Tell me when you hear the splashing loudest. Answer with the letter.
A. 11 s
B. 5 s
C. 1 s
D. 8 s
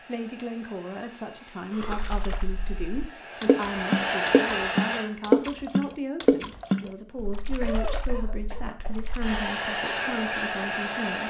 B.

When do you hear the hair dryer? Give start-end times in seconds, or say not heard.
0.0-5.0, 9.2-11.2.